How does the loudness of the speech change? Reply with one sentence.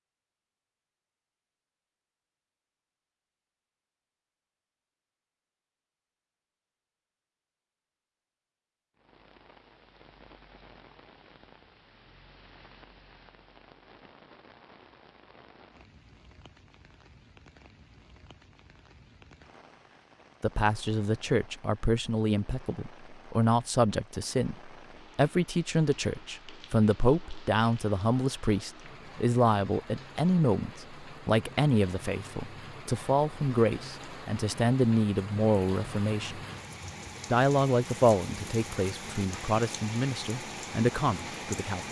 The loudness of the speech stays about the same.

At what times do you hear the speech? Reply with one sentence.
You can hear the speech from 20.4 to 36.4 s and from 37.3 to 41.8 s.